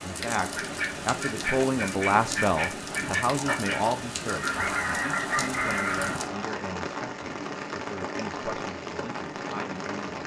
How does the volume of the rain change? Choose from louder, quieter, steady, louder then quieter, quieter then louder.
steady.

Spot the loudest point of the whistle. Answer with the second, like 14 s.
5 s.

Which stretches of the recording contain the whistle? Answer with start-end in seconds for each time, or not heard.
4.5-6.5.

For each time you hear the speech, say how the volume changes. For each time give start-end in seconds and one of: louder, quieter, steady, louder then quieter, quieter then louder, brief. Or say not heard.
0.0-10.2 quieter.